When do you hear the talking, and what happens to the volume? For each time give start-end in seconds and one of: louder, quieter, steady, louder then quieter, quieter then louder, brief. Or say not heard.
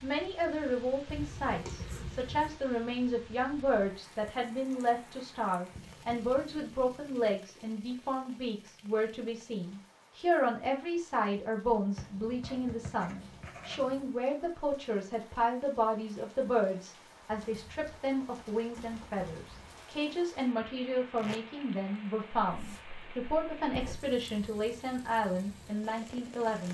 0.0-26.6 steady.